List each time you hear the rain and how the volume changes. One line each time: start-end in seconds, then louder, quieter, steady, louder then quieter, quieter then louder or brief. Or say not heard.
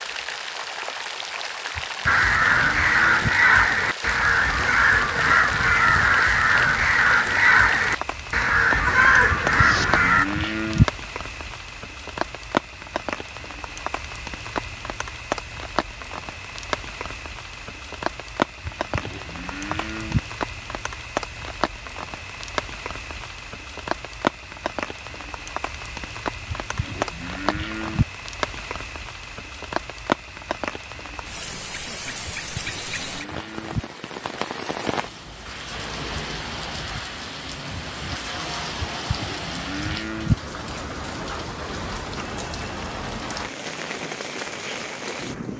0.0-45.5 steady.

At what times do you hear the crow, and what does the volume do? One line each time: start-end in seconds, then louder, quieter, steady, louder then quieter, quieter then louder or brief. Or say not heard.
2.0-10.2 steady.